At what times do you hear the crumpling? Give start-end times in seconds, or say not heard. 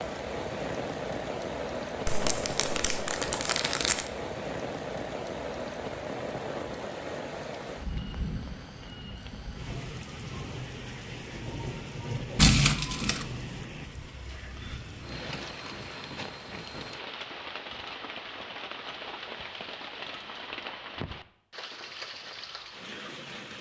2.0-4.0, 12.3-13.2.